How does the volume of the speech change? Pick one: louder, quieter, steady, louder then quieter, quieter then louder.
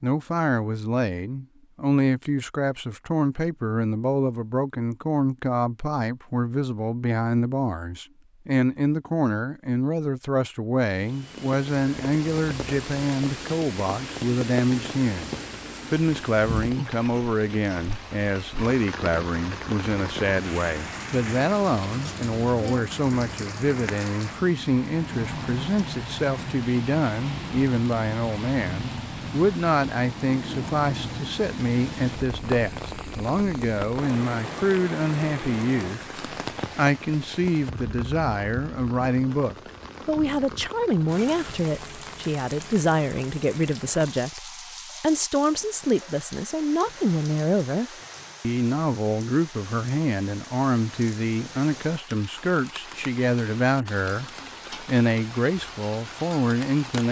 steady.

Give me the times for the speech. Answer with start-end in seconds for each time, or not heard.
0.0-57.0.